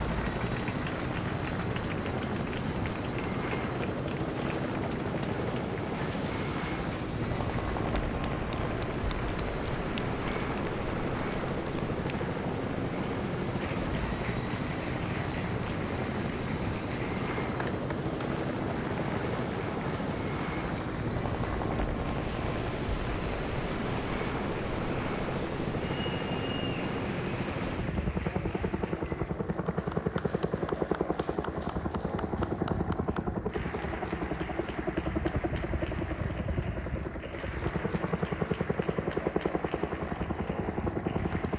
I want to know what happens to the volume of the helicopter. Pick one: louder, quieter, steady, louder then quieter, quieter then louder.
steady.